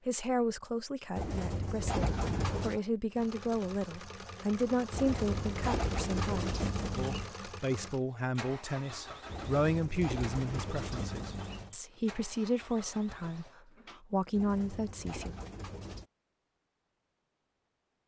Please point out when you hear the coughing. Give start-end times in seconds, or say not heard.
2.0-2.9.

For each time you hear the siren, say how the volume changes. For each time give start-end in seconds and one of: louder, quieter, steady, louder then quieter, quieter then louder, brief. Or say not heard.
not heard.